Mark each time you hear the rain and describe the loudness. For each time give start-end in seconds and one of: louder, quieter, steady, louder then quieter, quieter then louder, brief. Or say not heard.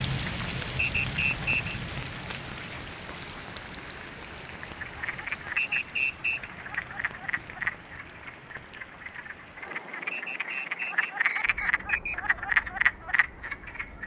0.0-14.0 quieter.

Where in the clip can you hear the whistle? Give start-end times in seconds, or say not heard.
0.8-1.7, 5.5-6.5, 10.1-12.2.